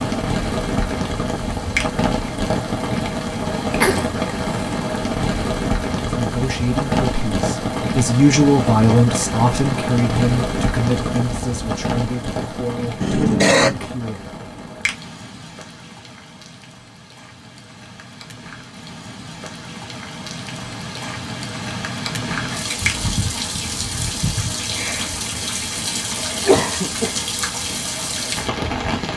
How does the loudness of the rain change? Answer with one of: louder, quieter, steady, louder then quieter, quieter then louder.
quieter then louder.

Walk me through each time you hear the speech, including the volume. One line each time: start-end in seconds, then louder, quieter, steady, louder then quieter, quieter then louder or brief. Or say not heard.
6.2-14.3 louder then quieter.